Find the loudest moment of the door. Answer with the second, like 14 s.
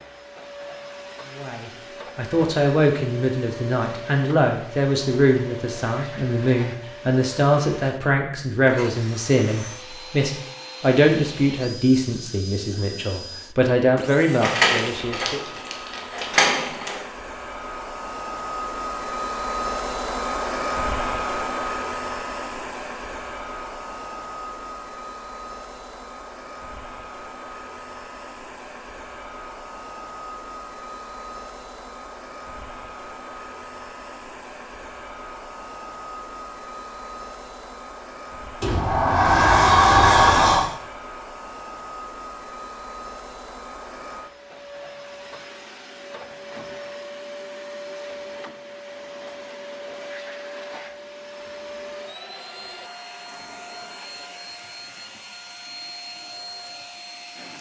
40 s.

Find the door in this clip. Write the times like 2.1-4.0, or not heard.
14.4-17.0, 38.6-40.6.